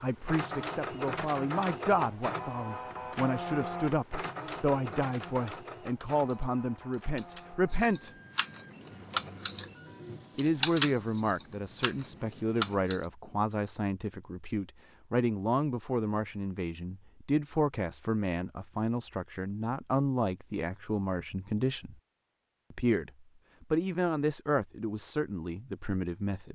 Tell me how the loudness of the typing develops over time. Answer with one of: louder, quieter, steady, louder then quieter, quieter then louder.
louder then quieter.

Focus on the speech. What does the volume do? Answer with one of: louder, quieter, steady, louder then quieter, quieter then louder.
steady.